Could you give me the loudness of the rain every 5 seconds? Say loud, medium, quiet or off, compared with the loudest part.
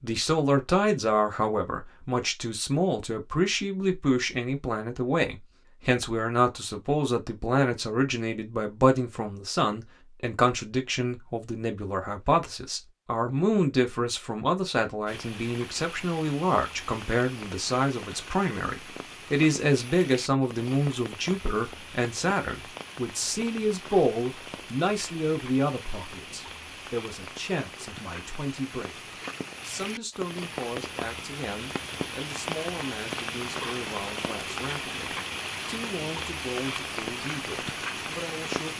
off, off, off, medium, medium, medium, loud, loud.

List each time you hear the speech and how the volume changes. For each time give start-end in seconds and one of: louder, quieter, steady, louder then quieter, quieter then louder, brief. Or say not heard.
0.0-38.7 quieter.